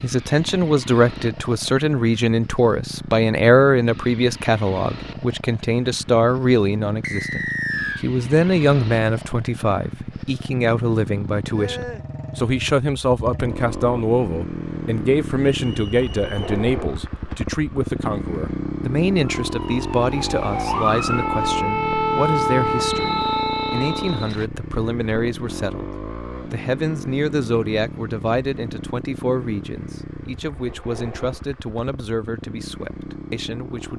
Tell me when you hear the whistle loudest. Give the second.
8 s.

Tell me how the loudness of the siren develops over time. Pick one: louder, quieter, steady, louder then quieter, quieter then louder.
louder.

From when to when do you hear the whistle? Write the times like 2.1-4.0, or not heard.
7.0-8.1, 15.7-16.5, 22.8-24.5.